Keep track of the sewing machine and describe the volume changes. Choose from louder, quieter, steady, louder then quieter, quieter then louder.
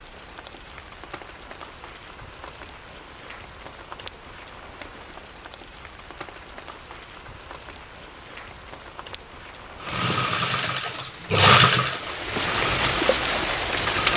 louder then quieter.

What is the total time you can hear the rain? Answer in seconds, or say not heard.
14 s.